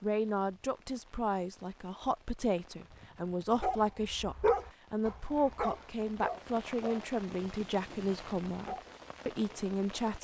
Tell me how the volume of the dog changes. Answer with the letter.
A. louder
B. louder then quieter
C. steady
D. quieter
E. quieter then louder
D.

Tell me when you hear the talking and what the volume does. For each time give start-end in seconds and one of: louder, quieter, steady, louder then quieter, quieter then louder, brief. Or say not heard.
0.0-10.1 steady.